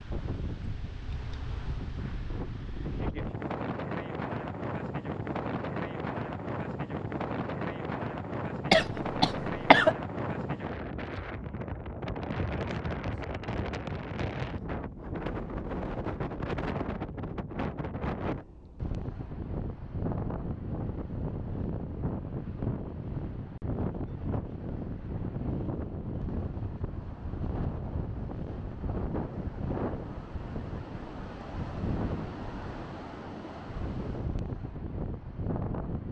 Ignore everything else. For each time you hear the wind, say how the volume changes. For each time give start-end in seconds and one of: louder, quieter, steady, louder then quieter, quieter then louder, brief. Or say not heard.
0.0-36.0 steady.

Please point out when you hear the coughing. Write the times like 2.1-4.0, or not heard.
8.7-9.9.